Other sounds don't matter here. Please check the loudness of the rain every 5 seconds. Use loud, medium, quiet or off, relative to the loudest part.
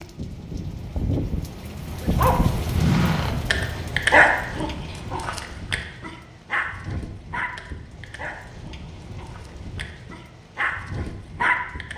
loud, medium, medium.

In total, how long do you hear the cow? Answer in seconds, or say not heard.
not heard.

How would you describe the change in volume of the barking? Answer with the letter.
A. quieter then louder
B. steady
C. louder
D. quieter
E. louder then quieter
A.